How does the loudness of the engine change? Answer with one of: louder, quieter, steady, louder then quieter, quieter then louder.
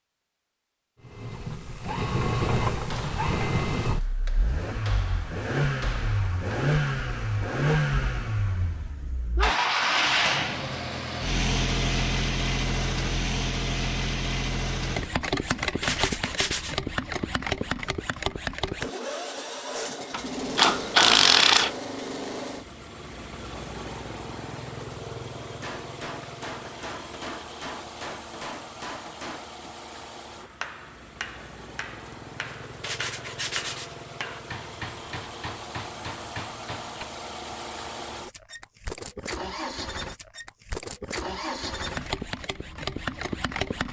quieter then louder.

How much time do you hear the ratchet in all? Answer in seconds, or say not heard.
2 s.